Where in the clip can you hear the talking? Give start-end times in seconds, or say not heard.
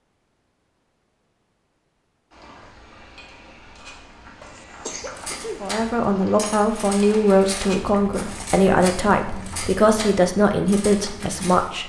5.6-11.8.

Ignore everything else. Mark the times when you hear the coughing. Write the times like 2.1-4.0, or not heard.
4.4-5.7.